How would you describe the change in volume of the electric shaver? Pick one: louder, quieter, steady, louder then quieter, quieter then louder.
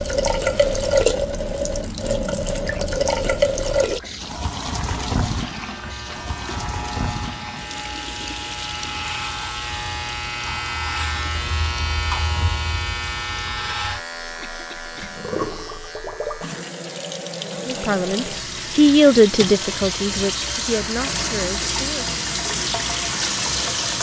louder then quieter.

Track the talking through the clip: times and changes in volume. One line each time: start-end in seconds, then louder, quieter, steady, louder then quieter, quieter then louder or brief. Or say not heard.
17.6-22.1 louder then quieter.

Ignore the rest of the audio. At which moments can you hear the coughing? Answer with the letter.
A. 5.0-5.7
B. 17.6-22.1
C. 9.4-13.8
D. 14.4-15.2
D.